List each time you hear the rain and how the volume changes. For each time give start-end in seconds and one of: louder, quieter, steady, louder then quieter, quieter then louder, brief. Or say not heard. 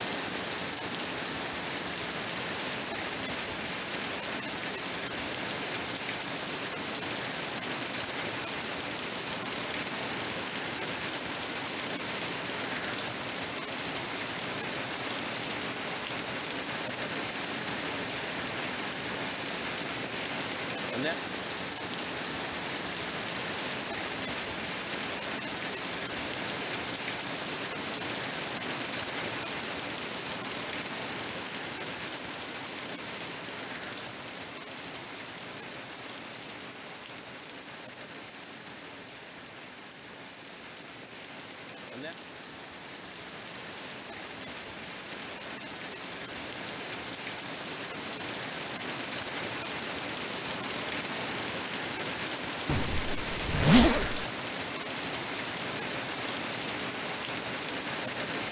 0.0-58.4 quieter then louder.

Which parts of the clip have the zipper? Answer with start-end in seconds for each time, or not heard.
52.6-54.2.